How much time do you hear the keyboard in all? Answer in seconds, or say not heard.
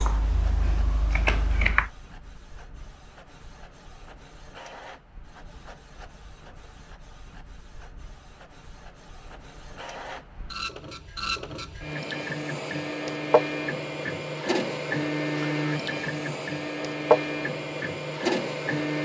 2 s.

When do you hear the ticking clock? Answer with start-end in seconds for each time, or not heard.
not heard.